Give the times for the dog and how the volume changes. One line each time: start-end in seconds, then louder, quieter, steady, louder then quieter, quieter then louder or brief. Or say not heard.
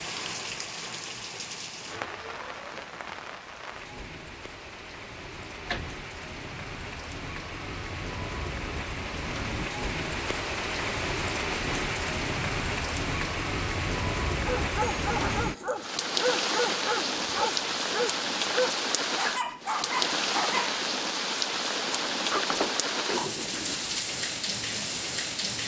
14.3-20.8 steady.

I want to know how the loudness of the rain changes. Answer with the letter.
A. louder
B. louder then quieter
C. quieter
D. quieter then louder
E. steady
A.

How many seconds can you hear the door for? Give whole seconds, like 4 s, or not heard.
3 s.